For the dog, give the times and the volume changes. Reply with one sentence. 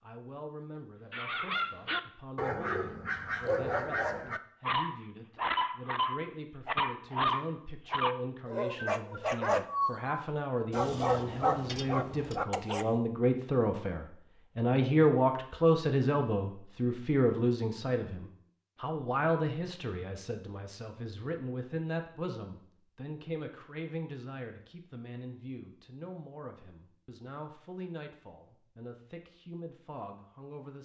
The dog can be heard from 1.1 to 12.8 s, at a steady volume.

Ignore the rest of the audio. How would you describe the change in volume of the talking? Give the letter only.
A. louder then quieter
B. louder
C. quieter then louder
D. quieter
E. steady
A.